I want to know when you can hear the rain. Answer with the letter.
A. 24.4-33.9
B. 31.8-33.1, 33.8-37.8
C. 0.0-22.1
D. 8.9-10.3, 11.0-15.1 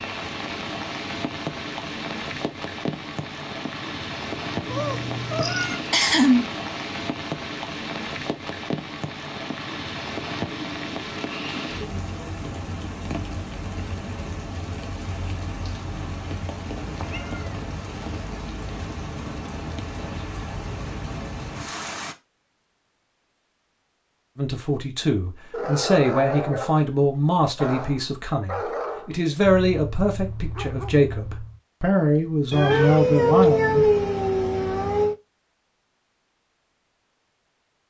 C.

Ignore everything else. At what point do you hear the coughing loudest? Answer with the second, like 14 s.
6 s.